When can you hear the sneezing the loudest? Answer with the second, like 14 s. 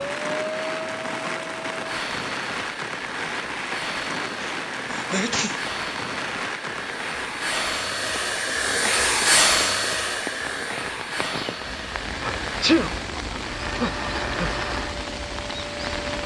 13 s.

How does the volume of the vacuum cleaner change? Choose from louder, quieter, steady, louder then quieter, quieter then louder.
louder then quieter.